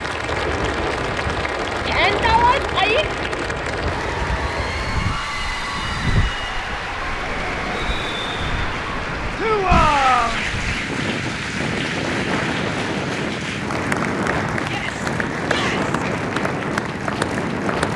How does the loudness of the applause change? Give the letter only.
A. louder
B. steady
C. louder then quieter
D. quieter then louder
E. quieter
B.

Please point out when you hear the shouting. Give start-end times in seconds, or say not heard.
1.9-3.0, 9.3-10.4, 14.6-15.9.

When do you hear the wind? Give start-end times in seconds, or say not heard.
0.0-17.9.